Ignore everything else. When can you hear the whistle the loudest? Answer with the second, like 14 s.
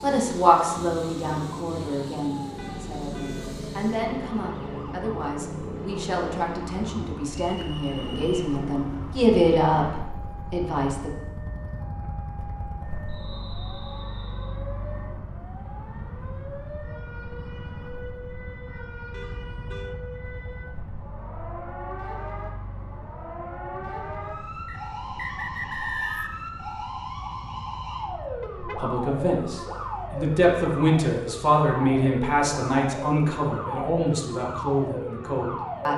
26 s.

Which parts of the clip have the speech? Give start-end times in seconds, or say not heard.
0.0-11.1, 28.8-35.9.